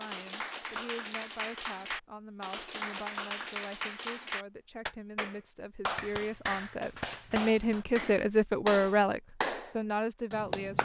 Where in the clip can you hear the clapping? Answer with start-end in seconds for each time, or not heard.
0.0-10.8.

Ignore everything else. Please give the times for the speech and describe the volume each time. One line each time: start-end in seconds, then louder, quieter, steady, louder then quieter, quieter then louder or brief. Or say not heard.
0.0-10.8 louder.